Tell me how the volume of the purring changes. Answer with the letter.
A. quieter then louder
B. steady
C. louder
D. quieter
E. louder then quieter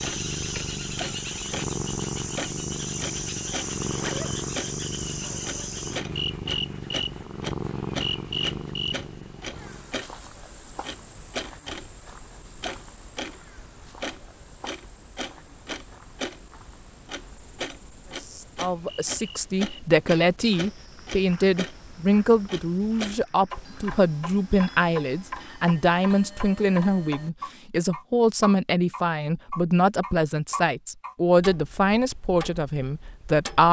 B.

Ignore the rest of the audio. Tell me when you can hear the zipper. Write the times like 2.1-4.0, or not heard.
3.9-4.4.